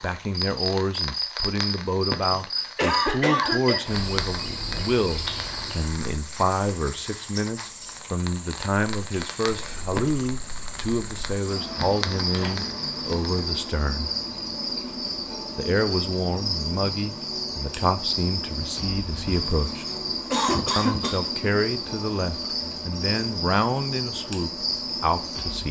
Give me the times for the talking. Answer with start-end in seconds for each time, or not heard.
0.0-14.1, 15.6-19.9, 20.8-25.6.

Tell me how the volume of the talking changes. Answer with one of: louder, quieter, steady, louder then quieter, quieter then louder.
steady.